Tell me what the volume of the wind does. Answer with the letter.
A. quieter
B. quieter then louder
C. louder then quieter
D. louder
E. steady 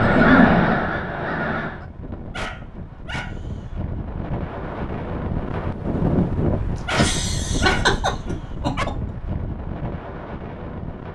C.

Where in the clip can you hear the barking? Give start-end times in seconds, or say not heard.
2.3-3.5, 6.8-8.8.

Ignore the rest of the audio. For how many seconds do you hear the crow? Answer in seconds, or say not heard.
2 s.